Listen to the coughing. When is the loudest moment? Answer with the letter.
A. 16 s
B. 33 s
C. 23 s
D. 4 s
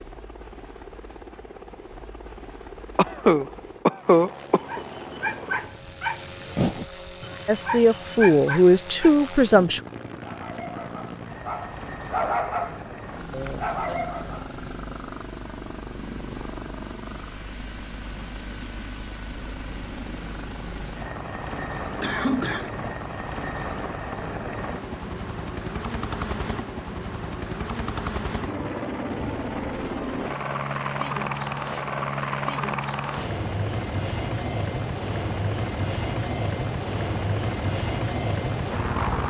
D.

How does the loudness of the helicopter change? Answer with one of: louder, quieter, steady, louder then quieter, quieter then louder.
louder.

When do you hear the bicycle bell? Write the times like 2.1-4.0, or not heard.
not heard.